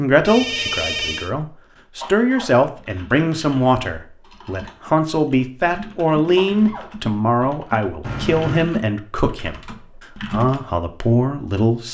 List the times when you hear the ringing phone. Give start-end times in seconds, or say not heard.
0.2-1.3, 8.0-8.7.